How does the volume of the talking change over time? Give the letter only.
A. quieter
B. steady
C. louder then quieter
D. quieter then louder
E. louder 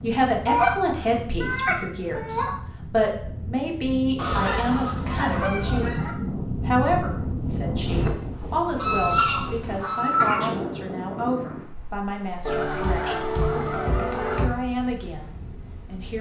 A.